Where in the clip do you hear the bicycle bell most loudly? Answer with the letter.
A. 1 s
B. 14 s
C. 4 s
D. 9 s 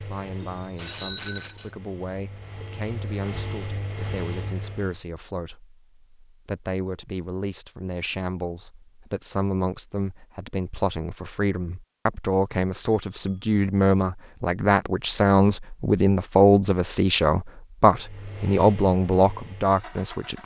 A.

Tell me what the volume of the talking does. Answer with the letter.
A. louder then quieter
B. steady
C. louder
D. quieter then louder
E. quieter
C.